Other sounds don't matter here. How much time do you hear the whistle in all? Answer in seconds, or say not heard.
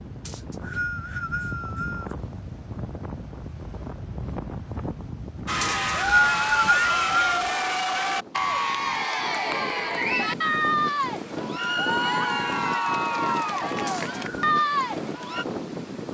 4 s.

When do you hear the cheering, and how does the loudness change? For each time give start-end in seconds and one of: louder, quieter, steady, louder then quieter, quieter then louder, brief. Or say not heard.
5.5-15.4 steady.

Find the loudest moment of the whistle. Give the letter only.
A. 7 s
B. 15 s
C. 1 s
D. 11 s
A.